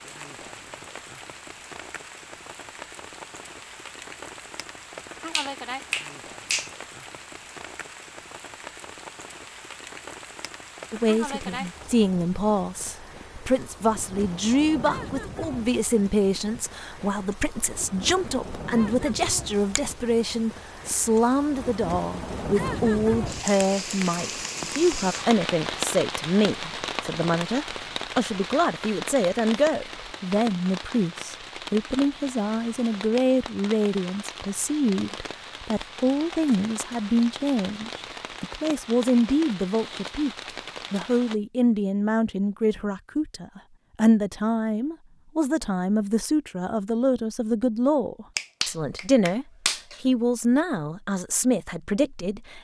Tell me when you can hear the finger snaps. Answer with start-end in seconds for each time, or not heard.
5.3-6.8, 48.4-50.0.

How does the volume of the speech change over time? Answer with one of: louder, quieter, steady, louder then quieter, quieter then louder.
steady.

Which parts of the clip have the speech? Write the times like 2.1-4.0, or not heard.
10.9-52.5.